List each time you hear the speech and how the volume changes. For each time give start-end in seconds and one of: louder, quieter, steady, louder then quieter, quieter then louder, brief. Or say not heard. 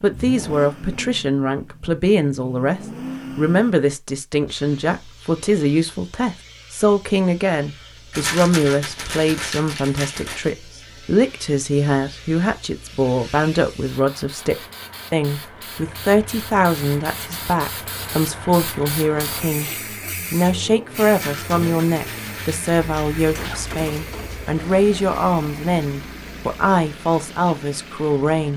0.0-19.7 steady
20.3-28.5 steady.